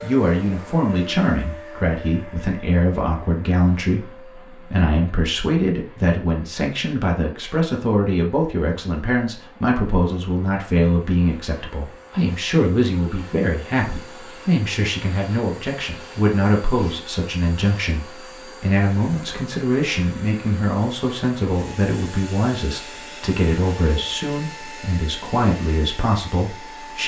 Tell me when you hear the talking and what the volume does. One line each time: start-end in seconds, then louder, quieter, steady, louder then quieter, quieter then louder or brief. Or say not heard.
0.0-27.0 steady.